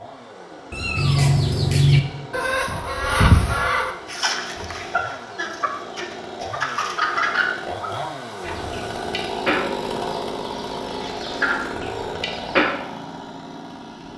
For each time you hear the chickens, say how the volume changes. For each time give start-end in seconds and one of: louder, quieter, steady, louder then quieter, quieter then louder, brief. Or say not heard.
0.9-12.7 quieter.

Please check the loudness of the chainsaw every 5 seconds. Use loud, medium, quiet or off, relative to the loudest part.
medium, loud, loud.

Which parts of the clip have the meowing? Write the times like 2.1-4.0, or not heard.
0.7-1.8.